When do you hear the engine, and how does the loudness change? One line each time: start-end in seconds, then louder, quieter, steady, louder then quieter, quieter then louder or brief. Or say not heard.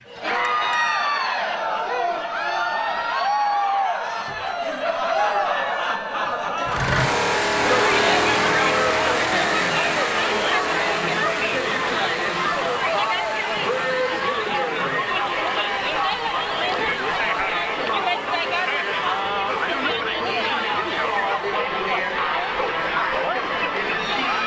6.7-21.2 quieter.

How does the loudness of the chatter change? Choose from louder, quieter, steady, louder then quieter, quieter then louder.
steady.